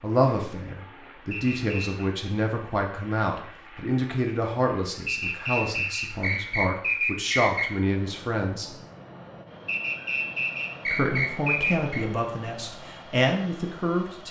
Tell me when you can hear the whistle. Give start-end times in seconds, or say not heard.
1.3-2.0, 5.0-7.8, 9.7-12.1.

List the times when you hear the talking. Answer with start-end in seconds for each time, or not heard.
0.0-8.7, 10.8-14.2.